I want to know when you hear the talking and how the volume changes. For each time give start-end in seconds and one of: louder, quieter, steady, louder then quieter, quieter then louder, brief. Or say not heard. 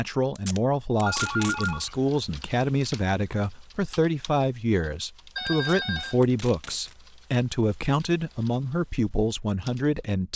0.0-10.3 steady.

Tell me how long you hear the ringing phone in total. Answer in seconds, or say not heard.
2 s.